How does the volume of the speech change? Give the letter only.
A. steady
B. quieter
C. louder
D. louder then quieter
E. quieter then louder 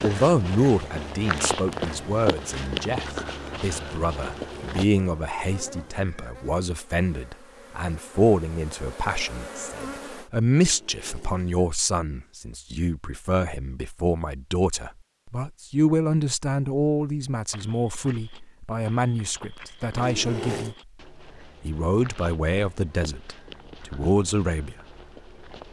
A.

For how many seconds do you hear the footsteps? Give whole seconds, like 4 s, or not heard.
13 s.